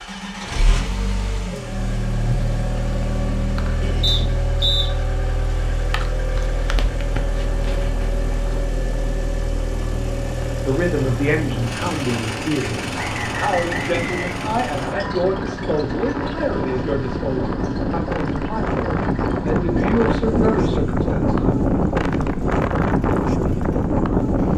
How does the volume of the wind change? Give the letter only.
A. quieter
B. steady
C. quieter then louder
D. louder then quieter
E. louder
E.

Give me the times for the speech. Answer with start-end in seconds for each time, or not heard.
10.7-21.6.